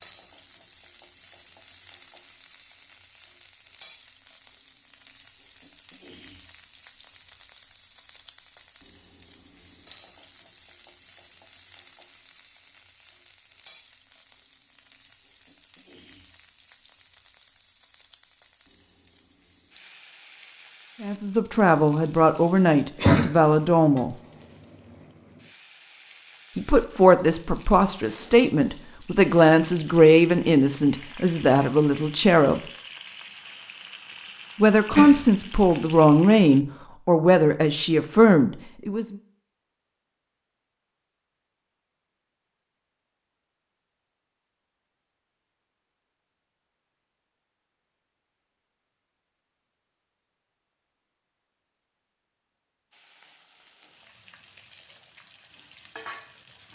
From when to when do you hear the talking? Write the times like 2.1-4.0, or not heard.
21.0-24.2, 26.6-32.6, 34.6-39.1.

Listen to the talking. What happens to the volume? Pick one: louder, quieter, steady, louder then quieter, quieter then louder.
steady.